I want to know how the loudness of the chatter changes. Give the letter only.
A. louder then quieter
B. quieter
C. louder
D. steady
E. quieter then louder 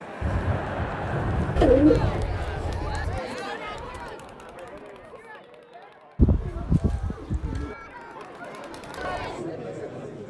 E.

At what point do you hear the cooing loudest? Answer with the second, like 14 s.
2 s.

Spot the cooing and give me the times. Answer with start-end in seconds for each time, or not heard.
1.6-3.2, 6.2-7.8.